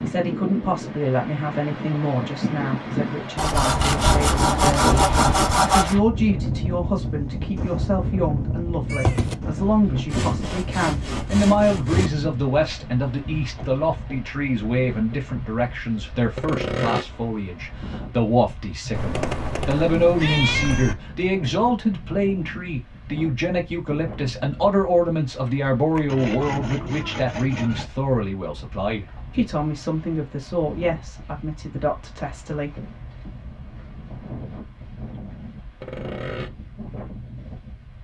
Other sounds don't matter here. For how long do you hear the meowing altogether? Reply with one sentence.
The meowing can be heard for 3 seconds in total.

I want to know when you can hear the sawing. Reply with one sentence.
You can hear the sawing from 3.4 to 6.0 s, from 10.1 to 12.1 s, from 16.4 to 17.1 s, from 26.1 to 27.9 s and from 35.8 to 36.5 s.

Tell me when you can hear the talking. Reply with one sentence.
The talking can be heard from 0.0 to 32.7 s.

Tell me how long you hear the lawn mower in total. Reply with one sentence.
The lawn mower can't be heard in this clip.